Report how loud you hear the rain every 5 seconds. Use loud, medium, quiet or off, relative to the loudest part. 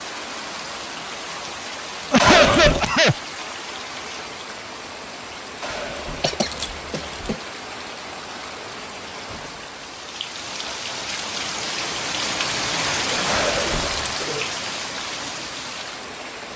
medium, medium, loud, medium.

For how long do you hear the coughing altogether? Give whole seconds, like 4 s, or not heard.
4 s.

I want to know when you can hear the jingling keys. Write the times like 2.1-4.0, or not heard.
2.1-3.0, 5.6-7.3, 13.2-14.2.